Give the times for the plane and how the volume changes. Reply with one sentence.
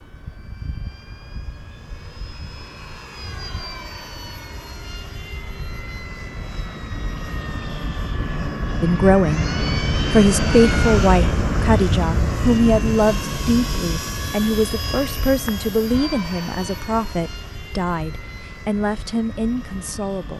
The plane can be heard from 0.0 to 20.3 s, getting louder then quieter.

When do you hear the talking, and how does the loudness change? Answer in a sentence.
The talking can be heard briefly from 8.8 to 9.4 s; and from 10.1 to 20.3 s, getting quieter.